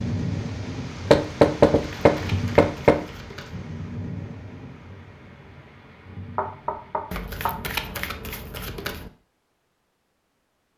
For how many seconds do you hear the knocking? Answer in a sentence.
You can hear the knocking for 3 seconds altogether.